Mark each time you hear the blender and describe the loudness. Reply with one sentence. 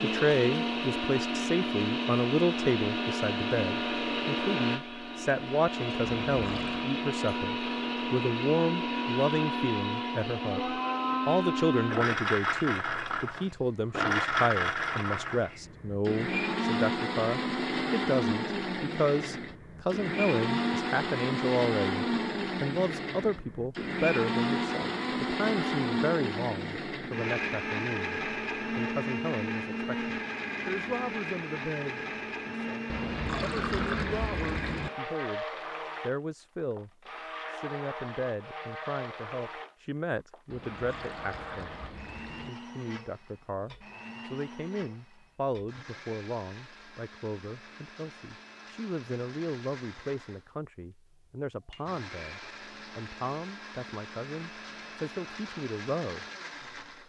You can hear the blender from 0.0 to 57.0 s, getting quieter.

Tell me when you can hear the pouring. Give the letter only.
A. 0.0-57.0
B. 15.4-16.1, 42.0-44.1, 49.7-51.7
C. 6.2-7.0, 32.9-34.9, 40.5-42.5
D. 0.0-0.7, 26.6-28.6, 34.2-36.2
C.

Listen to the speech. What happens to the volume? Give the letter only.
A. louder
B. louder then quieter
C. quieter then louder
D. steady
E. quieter
E.